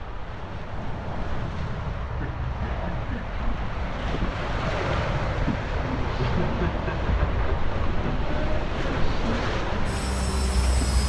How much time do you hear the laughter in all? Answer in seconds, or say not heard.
3 s.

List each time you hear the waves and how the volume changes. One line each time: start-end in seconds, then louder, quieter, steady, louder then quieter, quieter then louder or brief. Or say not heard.
0.0-11.0 louder.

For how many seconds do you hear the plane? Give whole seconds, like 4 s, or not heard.
11 s.